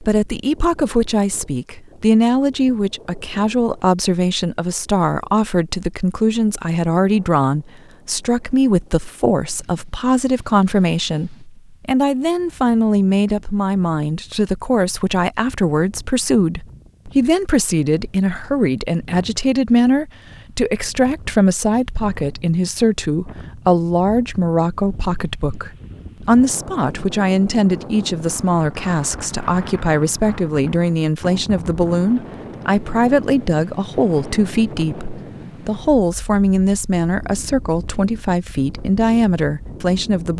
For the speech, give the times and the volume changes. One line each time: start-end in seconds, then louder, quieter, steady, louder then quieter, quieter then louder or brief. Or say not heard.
0.0-40.3 steady.